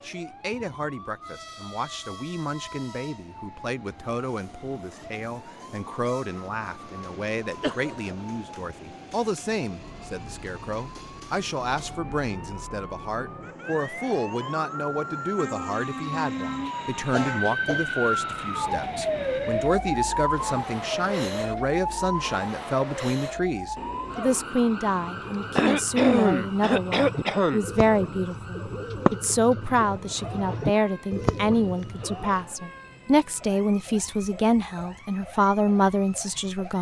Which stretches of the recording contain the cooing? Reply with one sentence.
The cooing can be heard from 25.0 to 32.5 s.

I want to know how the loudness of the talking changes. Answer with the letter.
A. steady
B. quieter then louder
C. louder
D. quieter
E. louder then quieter
C.